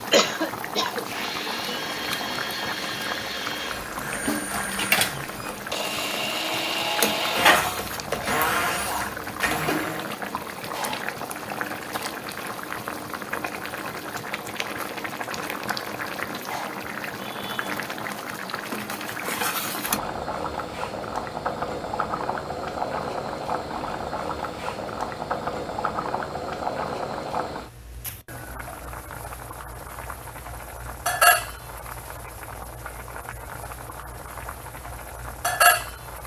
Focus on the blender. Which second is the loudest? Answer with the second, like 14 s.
7 s.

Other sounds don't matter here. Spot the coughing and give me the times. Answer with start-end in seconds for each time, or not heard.
0.1-1.1.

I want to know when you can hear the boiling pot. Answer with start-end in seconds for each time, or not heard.
0.0-36.2.